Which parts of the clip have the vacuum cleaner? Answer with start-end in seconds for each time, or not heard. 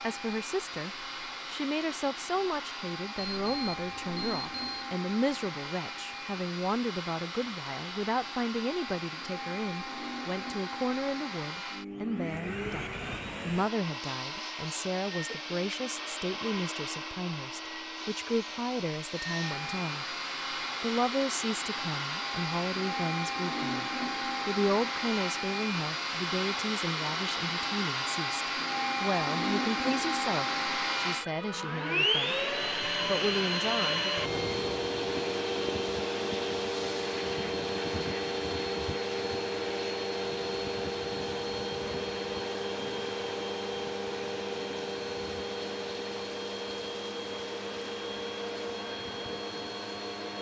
0.0-50.3.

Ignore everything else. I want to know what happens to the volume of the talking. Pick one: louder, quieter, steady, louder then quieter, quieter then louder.
steady.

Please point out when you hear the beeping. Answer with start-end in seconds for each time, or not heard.
3.1-4.8, 34.1-35.0.